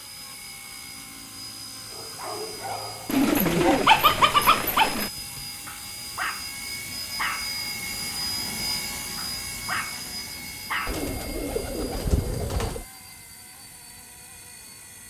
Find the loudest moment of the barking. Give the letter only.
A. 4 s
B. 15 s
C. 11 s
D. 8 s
A.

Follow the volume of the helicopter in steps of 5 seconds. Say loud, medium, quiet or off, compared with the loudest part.
medium, loud, medium.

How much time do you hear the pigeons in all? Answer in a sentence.
You can hear the pigeons for 4 seconds altogether.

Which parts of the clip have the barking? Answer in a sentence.
The barking can be heard from 1.9 to 10.9 s.